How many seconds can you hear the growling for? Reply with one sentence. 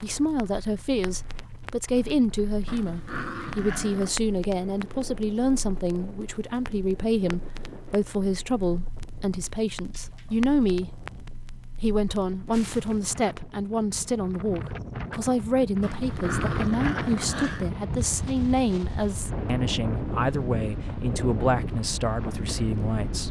The growling can be heard for 5 seconds in total.